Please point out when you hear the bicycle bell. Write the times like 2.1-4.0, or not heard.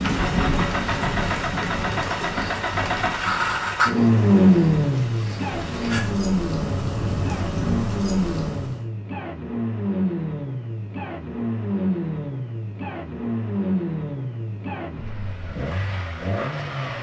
not heard.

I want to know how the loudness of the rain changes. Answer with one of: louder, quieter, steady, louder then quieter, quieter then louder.
quieter then louder.